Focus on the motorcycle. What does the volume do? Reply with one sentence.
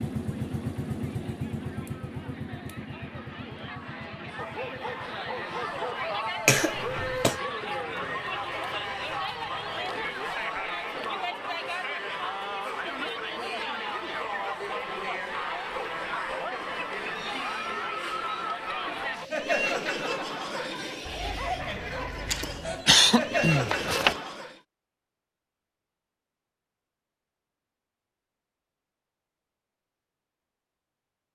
The loudness of the motorcycle goes down.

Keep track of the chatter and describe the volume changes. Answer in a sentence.
The volume of the chatter goes up.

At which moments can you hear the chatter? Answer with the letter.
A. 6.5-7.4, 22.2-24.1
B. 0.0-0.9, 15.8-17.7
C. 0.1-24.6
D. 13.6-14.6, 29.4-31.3
C.